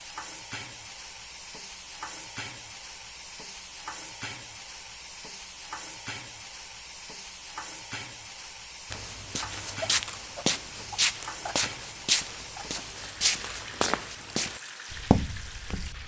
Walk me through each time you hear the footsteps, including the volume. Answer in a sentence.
The footsteps can be heard from 8.9 to 16.0 s, at a steady volume.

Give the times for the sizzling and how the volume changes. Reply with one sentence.
You can hear the sizzling from 0.0 to 16.0 s, at a steady volume.